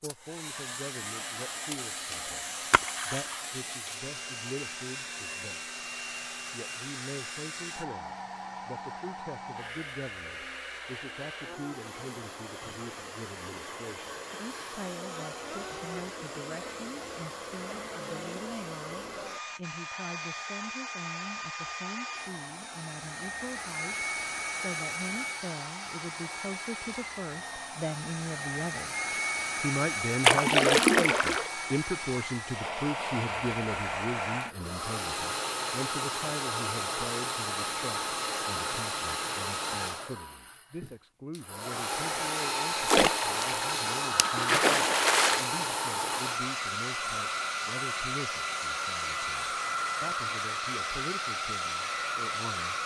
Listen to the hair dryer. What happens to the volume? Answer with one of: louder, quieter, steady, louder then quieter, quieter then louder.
louder.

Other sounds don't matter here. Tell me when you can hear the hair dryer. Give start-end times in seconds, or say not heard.
0.0-52.8.